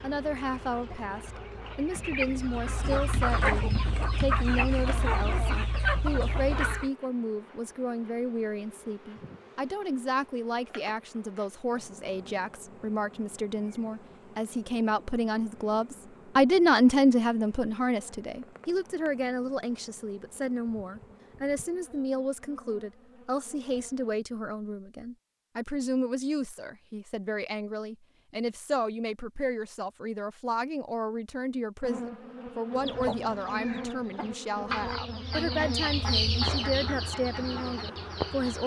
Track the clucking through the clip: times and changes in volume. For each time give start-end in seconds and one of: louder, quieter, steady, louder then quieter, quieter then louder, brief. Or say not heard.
0.0-6.9 louder
32.8-38.6 louder then quieter.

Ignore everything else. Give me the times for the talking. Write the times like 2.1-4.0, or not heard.
0.0-38.6.